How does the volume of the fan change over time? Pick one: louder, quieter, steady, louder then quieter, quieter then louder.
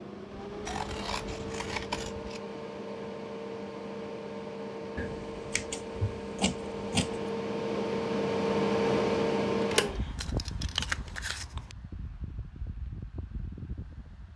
louder then quieter.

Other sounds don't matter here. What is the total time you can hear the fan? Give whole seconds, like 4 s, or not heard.
14 s.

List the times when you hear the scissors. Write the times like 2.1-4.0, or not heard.
0.7-2.4, 5.0-7.3, 9.8-11.8.